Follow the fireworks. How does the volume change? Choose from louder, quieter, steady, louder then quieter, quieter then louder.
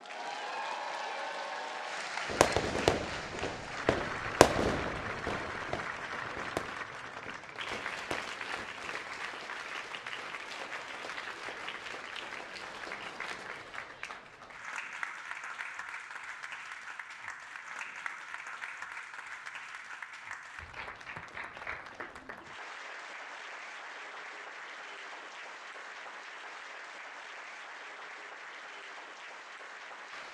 quieter.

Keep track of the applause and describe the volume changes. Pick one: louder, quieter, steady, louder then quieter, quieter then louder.
quieter.